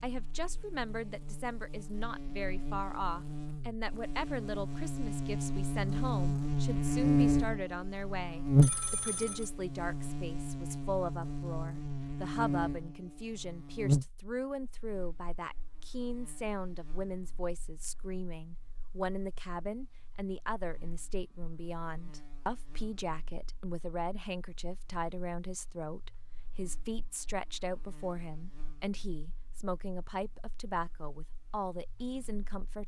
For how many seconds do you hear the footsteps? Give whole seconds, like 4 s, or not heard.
not heard.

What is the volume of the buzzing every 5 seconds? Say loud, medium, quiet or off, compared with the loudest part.
quiet, loud, medium, quiet, quiet, quiet, quiet.